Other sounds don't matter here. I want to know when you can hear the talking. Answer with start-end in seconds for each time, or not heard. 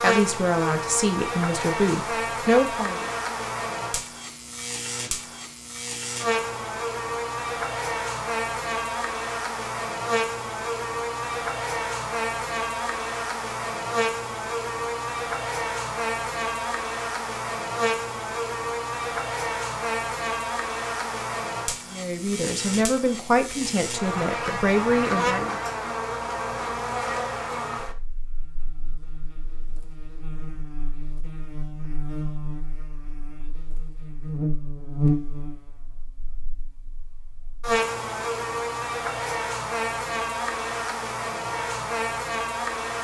0.0-3.1, 21.9-25.6.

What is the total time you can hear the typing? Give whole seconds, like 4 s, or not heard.
not heard.